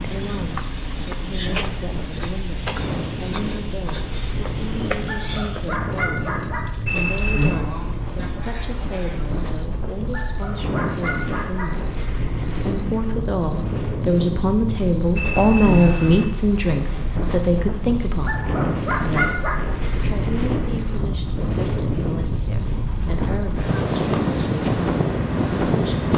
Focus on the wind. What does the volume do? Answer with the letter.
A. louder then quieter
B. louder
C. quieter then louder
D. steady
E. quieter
B.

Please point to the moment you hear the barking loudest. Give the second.
19 s.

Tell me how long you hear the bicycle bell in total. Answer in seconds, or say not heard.
2 s.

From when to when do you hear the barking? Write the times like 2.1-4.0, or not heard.
5.0-6.7, 10.1-11.7, 18.2-19.8.